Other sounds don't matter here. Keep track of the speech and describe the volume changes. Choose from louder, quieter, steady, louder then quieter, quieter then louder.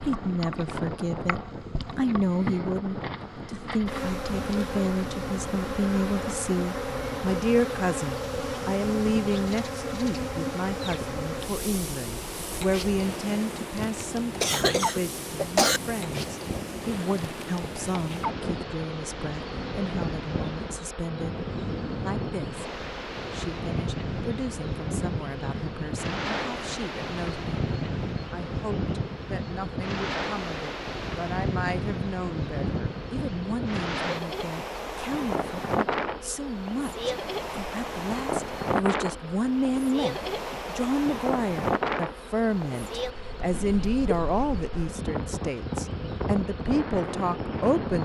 quieter then louder.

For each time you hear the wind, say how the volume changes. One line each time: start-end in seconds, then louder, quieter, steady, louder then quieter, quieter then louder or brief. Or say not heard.
0.0-48.0 louder.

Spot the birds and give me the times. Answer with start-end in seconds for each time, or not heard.
not heard.